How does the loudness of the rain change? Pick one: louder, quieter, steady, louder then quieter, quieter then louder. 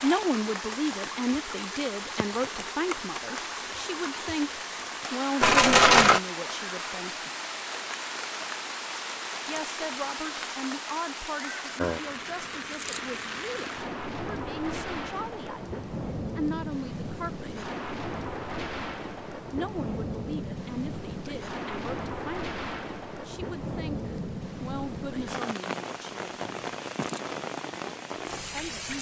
steady.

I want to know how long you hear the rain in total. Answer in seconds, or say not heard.
29 s.